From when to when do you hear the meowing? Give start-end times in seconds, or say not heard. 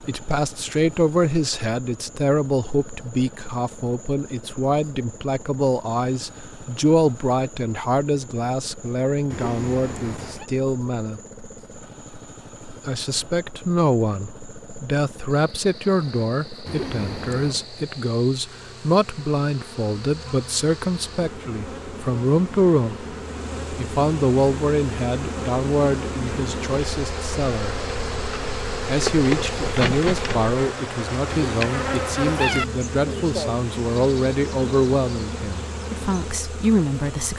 9.3-10.4, 16.6-17.6, 31.2-32.6.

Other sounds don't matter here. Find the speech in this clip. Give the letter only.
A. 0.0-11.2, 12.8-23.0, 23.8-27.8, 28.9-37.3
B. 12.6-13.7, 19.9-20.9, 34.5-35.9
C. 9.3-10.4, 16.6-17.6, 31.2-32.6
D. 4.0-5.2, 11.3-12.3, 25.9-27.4
A.